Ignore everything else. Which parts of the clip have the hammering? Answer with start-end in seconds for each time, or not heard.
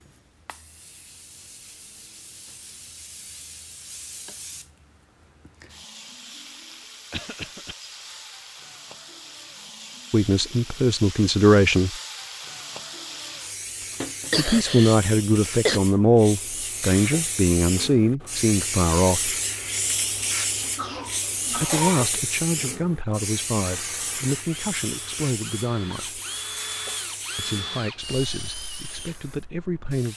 not heard.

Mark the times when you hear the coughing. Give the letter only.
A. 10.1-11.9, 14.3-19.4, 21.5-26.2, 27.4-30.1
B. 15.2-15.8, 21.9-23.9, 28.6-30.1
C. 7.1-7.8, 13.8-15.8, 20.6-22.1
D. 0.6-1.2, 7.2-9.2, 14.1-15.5
C.